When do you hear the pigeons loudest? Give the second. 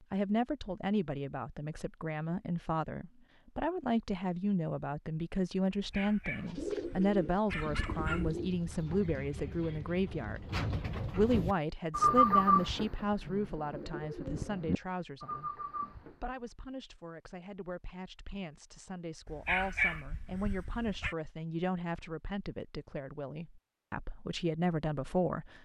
12 s.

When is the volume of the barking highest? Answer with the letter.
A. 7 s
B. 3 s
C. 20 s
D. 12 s
C.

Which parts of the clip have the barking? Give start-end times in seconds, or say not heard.
5.8-8.3, 19.2-21.1.